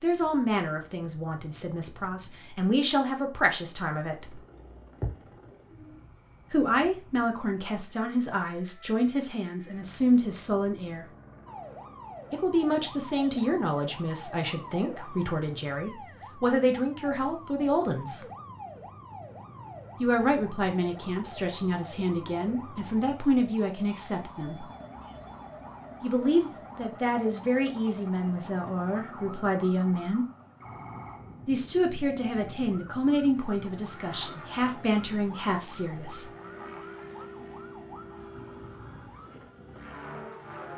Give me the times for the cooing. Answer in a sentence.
The cooing can be heard from 4.5 to 6.0 s.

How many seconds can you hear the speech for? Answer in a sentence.
You can hear the speech for 29 seconds altogether.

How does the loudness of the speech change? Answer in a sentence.
The volume of the speech stays about the same.